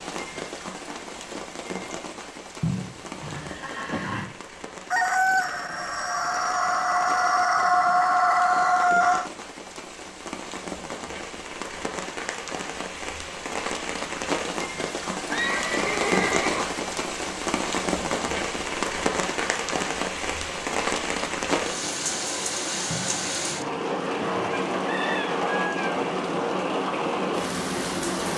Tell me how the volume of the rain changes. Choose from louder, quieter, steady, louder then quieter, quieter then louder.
louder.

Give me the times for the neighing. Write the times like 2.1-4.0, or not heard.
2.6-4.2, 15.3-16.8, 22.9-24.6.